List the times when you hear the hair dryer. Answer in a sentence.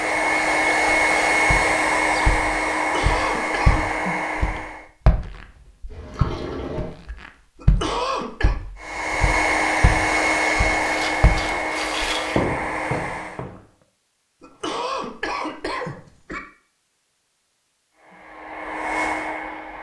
You can hear the hair dryer from 0.0 to 4.9 s, from 8.8 to 13.4 s and from 17.9 to 19.7 s.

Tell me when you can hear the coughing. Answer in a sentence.
The coughing can be heard from 2.8 to 3.9 s, from 7.5 to 8.6 s and from 14.4 to 16.4 s.